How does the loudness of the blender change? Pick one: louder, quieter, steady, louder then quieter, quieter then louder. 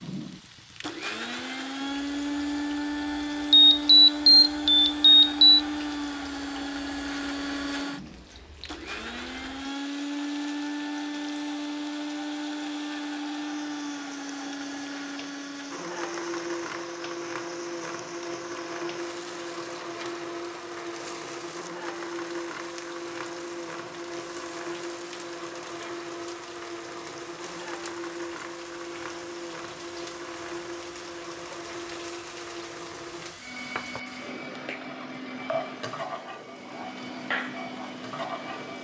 quieter.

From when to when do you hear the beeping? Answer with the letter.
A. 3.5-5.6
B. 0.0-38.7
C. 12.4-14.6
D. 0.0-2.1
A.